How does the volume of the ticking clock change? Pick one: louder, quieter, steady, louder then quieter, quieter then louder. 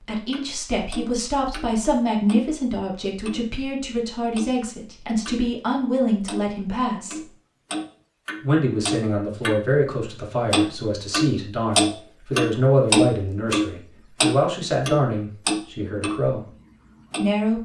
louder then quieter.